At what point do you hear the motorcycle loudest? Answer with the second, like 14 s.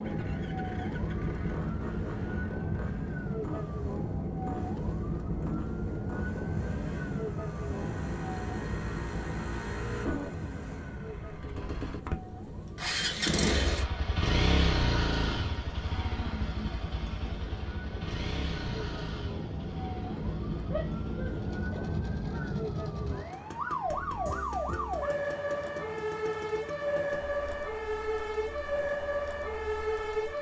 15 s.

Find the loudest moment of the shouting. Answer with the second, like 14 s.
21 s.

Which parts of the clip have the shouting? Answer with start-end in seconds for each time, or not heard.
20.7-22.5.